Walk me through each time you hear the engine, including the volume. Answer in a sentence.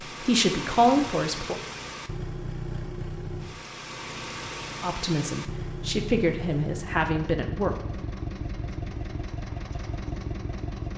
The engine can be heard from 0.0 to 10.9 s, at a steady volume.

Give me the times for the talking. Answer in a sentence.
The talking can be heard from 0.1 to 1.6 s and from 4.8 to 7.8 s.